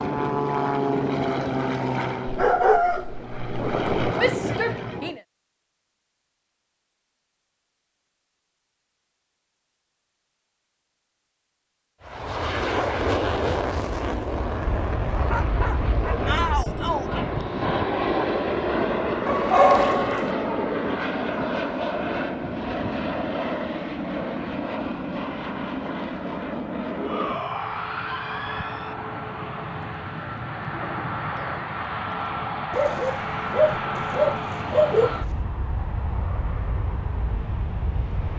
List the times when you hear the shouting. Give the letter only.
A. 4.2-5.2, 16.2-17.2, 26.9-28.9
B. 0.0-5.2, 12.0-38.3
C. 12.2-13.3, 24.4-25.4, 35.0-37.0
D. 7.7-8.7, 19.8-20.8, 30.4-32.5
A.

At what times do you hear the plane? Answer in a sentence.
You can hear the plane from 0.0 to 5.2 s and from 12.0 to 38.3 s.